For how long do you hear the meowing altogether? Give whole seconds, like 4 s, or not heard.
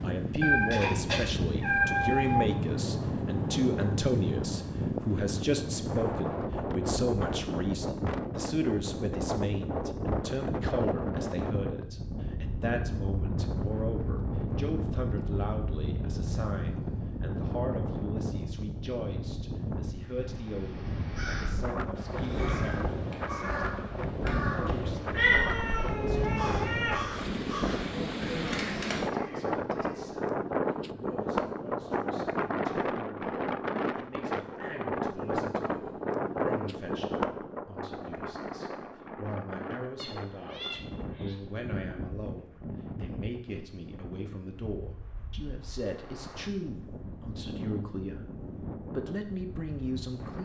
6 s.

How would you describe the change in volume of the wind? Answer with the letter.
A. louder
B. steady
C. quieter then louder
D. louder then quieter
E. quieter
E.